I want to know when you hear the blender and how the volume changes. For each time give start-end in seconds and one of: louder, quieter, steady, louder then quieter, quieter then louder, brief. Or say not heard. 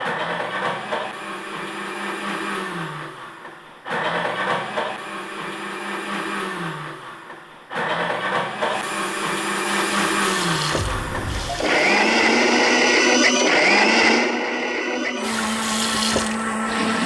0.0-17.0 louder.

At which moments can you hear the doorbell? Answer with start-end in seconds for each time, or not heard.
10.8-11.7.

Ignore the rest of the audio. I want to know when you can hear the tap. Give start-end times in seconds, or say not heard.
9.7-13.2, 15.2-17.0.